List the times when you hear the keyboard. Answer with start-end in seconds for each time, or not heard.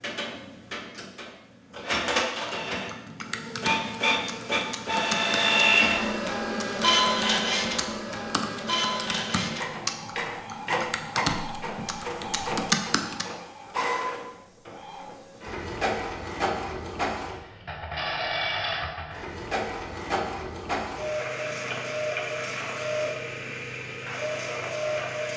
2.5-13.2.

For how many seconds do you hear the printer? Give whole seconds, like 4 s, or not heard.
25 s.